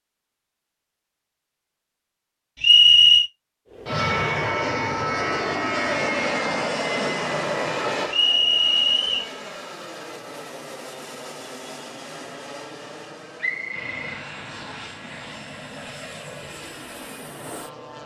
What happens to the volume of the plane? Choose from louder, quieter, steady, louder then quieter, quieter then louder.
quieter.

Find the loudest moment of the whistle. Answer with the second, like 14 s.
3 s.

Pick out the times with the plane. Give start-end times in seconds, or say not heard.
3.7-18.0.